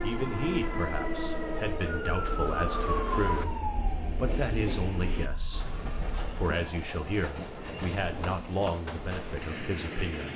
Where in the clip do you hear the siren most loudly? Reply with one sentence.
The loudest moment of the siren is at 3 seconds.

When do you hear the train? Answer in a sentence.
You can hear the train from 0.0 to 10.3 s.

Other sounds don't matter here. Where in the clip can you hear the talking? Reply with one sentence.
You can hear the talking from 0.0 to 3.5 s, from 4.2 to 5.7 s and from 6.3 to 10.3 s.